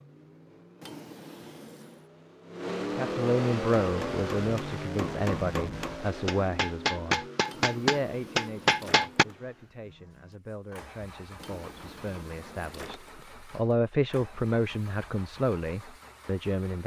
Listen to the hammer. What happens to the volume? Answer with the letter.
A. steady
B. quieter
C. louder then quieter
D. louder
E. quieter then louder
D.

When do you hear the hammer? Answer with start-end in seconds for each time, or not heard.
3.8-9.2.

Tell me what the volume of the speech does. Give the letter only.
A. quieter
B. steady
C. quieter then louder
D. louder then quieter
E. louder
C.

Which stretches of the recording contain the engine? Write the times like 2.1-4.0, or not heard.
0.0-16.8.